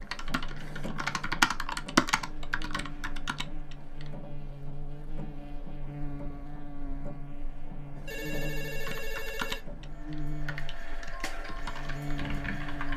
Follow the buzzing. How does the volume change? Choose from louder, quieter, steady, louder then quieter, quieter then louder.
louder.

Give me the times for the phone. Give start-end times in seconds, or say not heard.
8.1-9.7.